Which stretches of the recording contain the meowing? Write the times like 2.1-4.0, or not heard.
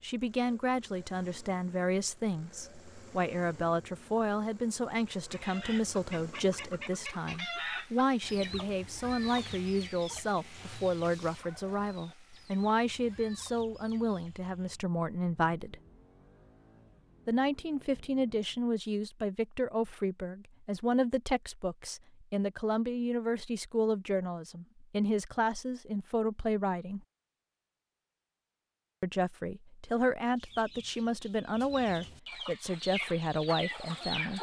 not heard.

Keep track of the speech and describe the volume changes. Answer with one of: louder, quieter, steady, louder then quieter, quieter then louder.
steady.